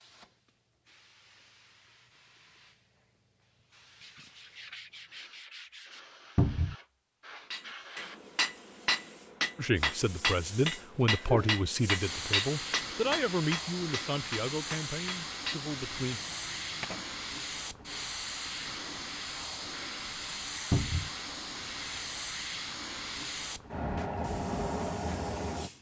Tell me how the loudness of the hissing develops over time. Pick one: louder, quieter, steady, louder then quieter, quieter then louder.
louder.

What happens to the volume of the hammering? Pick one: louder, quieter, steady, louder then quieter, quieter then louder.
quieter.